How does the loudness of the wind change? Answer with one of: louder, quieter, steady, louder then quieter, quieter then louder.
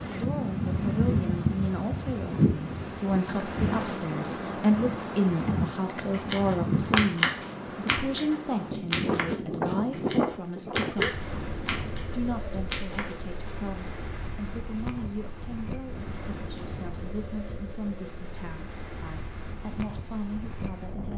quieter.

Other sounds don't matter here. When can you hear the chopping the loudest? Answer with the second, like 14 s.
7 s.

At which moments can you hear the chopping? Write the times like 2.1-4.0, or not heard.
5.8-13.6.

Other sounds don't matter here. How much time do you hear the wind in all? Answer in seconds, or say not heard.
21 s.